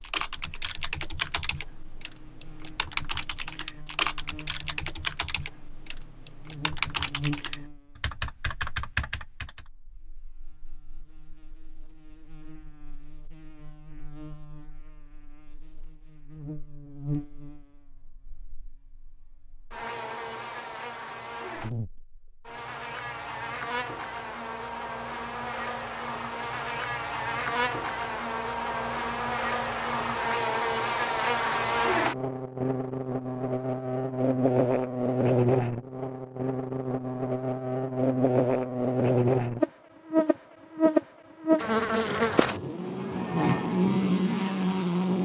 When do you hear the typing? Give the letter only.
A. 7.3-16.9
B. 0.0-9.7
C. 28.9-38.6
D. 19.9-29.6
B.